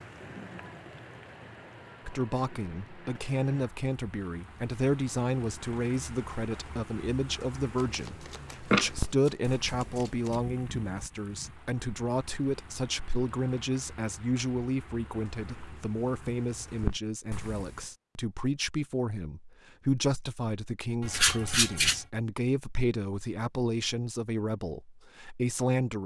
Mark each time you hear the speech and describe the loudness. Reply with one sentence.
The speech can be heard from 2.0 to 26.0 s, at a steady volume.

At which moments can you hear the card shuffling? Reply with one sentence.
You can hear the card shuffling from 7.8 to 10.4 s and from 21.0 to 22.0 s.